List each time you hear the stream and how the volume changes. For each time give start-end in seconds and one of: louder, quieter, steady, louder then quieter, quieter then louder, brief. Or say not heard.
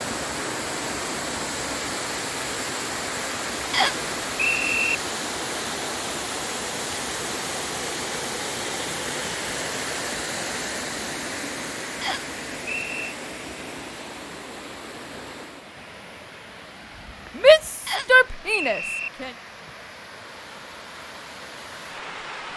0.0-22.5 quieter.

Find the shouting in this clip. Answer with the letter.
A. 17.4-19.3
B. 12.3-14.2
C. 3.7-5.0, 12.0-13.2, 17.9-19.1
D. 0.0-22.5
A.